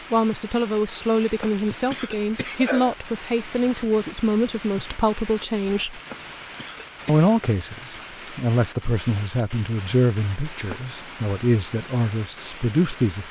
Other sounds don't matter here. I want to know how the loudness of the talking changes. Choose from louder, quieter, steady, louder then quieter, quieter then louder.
steady.